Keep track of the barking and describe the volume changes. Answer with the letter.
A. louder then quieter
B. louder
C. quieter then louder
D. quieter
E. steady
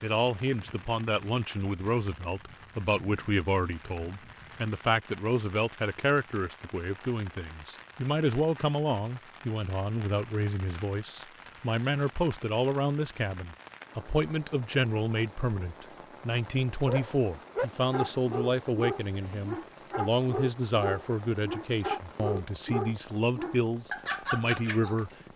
E.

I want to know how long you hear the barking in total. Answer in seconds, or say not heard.
8 s.